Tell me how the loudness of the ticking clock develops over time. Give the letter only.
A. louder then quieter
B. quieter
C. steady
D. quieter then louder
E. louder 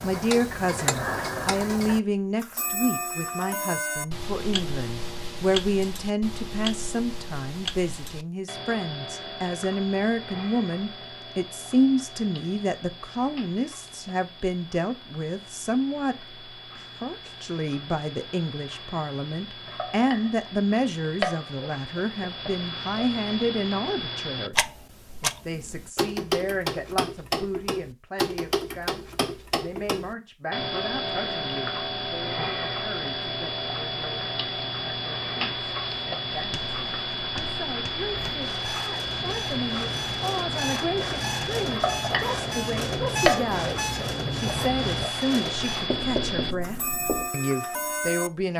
D.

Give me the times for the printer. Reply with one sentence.
You can hear the printer from 38.0 to 45.9 s.